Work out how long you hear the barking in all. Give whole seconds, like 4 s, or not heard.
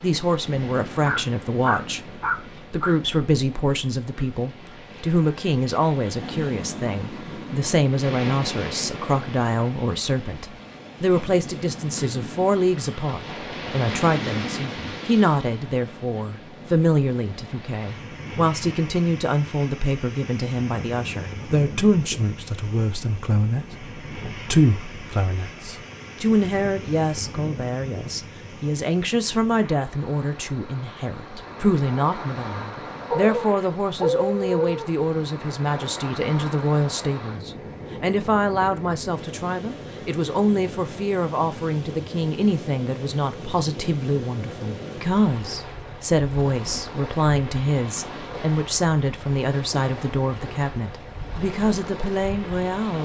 4 s.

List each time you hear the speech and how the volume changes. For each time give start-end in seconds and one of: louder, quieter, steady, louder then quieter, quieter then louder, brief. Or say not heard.
0.0-2.0 brief
2.7-53.0 steady.